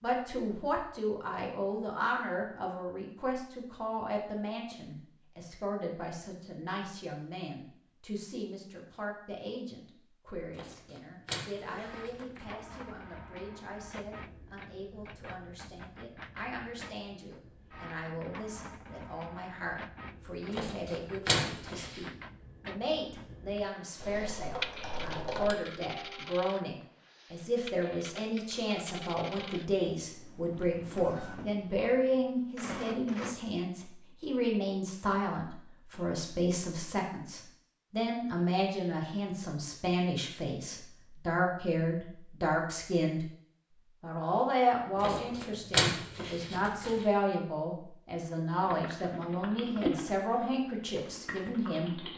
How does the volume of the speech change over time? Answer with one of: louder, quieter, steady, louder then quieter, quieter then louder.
quieter then louder.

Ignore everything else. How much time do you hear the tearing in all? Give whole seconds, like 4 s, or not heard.
6 s.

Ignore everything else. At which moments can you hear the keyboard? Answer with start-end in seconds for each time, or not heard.
24.0-25.6, 48.6-52.1.